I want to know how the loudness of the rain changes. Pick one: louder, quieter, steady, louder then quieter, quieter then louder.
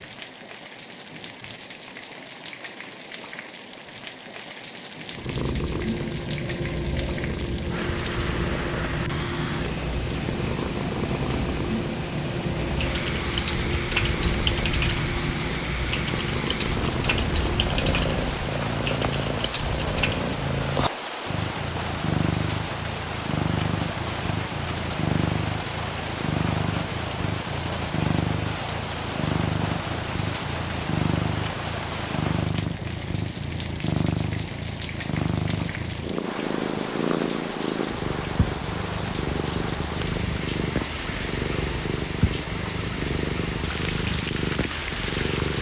steady.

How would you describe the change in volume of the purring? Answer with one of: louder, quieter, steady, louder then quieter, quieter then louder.
steady.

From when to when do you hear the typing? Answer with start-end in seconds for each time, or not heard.
12.8-20.2.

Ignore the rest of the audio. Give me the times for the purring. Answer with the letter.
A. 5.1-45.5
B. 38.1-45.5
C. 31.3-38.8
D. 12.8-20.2
A.